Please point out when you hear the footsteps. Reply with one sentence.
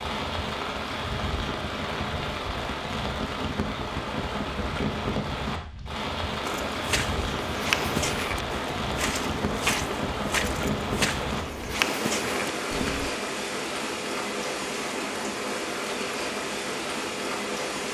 The footsteps can be heard from 6.4 to 13.1 s.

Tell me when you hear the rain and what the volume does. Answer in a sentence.
The rain can be heard from 0.0 to 17.8 s, at a steady volume.